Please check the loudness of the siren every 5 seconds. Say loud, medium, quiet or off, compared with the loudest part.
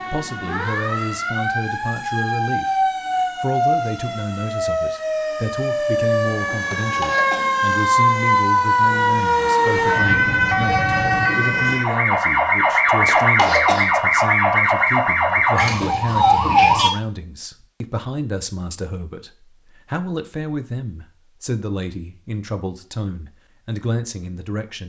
medium, loud, loud, loud, off.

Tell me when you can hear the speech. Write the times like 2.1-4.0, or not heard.
0.1-24.8.